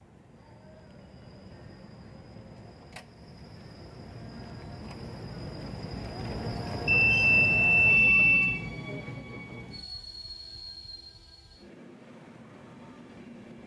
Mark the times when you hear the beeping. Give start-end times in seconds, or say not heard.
6.8-8.6.